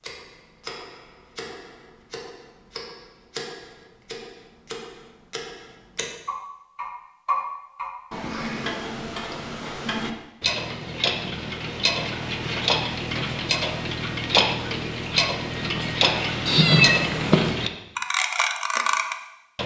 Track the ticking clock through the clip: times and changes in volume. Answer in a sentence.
You can hear the ticking clock from 0.0 to 19.6 s, getting louder.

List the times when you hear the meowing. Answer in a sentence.
You can hear the meowing from 16.4 to 17.6 s.